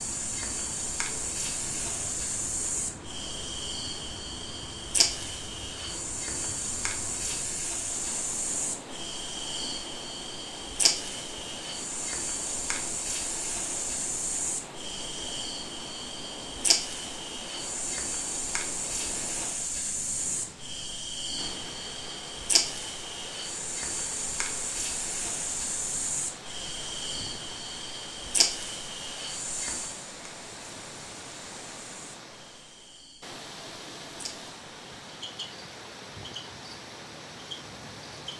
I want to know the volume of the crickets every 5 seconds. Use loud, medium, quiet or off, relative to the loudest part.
loud, loud, loud, loud, loud, loud, quiet, medium.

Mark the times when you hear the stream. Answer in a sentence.
The stream can be heard from 0.0 to 38.3 s.